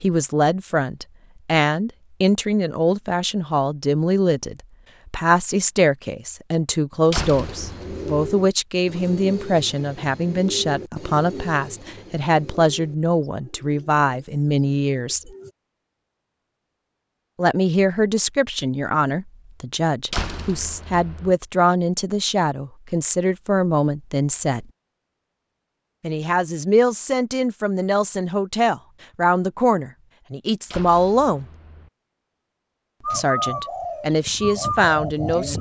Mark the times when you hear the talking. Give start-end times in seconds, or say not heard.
0.0-15.3, 17.4-24.6, 26.0-31.4, 33.1-35.5.